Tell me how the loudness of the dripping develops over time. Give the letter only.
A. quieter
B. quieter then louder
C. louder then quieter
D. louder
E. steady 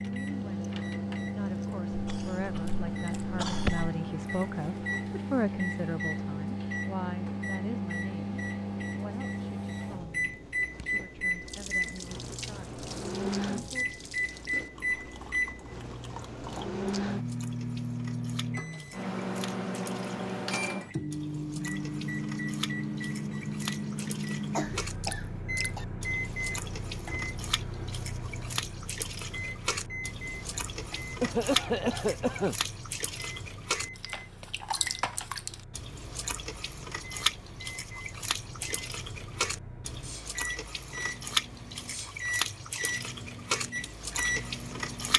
D.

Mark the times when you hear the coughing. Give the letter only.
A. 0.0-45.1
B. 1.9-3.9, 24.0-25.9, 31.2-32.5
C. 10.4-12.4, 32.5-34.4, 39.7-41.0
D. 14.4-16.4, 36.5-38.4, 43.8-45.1
B.